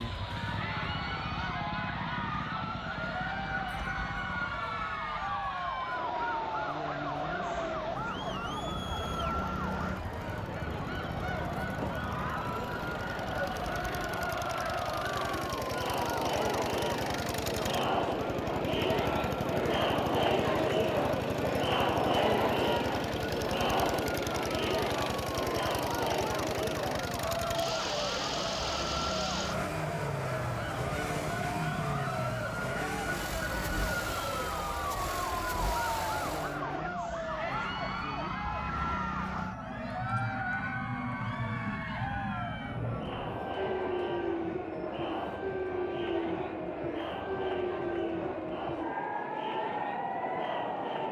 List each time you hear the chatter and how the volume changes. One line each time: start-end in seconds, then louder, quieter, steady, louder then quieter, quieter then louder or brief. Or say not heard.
0.3-51.0 louder then quieter.